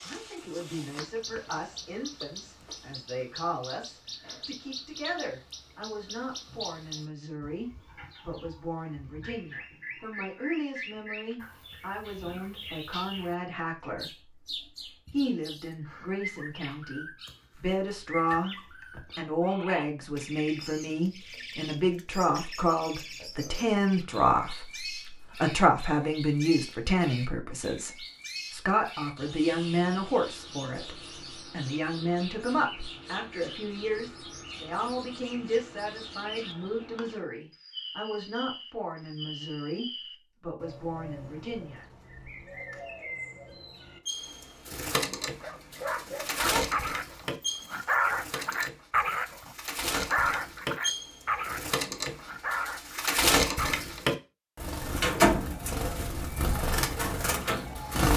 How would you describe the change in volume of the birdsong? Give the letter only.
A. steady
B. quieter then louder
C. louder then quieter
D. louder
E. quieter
D.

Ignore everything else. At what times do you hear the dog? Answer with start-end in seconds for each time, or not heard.
45.2-53.8.